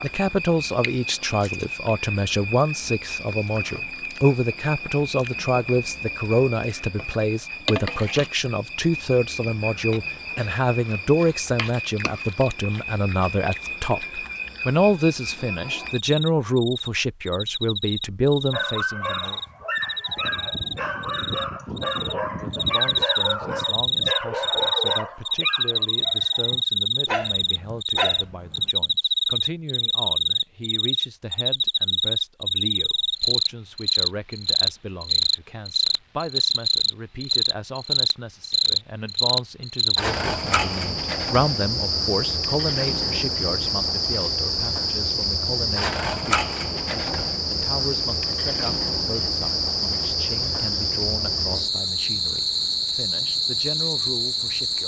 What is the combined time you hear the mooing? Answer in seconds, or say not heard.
not heard.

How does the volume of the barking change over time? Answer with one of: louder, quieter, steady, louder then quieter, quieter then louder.
steady.